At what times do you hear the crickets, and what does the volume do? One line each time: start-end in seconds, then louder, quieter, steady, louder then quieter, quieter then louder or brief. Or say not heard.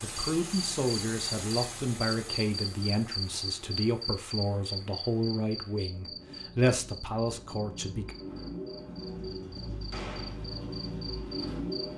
0.1-11.8 quieter then louder.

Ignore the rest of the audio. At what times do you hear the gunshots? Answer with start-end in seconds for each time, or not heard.
9.9-10.4.